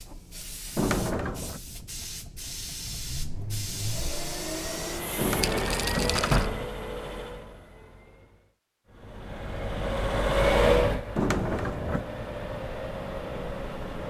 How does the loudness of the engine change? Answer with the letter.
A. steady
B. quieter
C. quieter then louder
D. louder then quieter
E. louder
D.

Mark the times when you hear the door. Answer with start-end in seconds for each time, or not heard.
0.8-1.6, 5.2-6.7, 11.2-12.1.